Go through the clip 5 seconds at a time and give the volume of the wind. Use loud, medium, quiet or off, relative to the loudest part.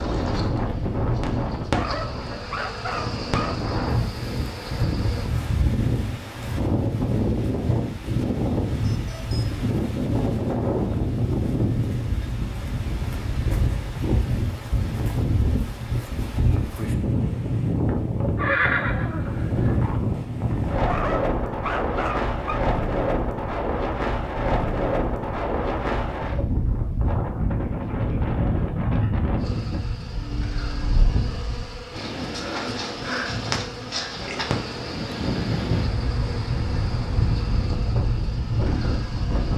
loud, loud, loud, loud, loud, loud, medium, loud.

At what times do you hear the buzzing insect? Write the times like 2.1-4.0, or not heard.
0.0-5.3, 29.4-39.5.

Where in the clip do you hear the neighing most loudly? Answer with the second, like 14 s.
19 s.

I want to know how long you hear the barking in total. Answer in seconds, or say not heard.
4 s.